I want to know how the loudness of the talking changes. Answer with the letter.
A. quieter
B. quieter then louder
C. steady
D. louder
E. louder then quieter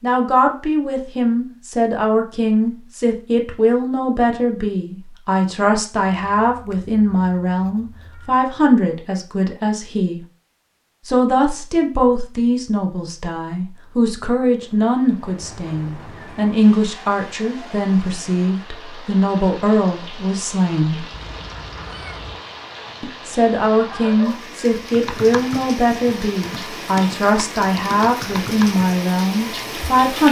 C.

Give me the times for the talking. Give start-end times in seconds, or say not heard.
0.0-10.2, 11.1-21.1, 23.0-30.2.